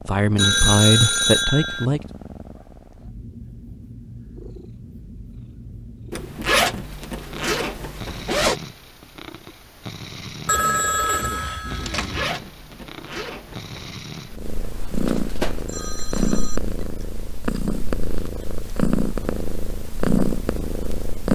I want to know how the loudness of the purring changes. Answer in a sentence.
The volume of the purring goes up.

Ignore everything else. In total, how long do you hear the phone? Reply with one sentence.
You can hear the phone for 5 seconds altogether.